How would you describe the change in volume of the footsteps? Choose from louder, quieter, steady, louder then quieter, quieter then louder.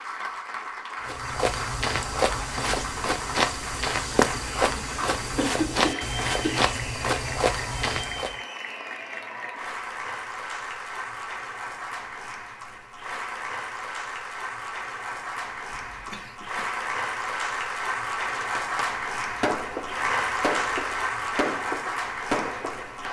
steady.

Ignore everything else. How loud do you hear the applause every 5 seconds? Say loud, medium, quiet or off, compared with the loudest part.
medium, medium, medium, loud, loud.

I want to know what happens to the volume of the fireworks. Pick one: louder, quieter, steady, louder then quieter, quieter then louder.
louder.